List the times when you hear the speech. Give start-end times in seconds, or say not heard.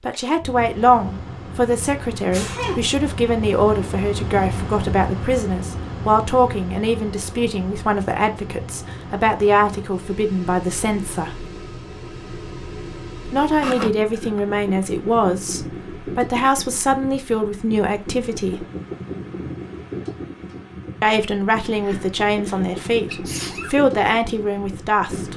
0.1-11.4, 13.2-18.6, 21.0-25.3.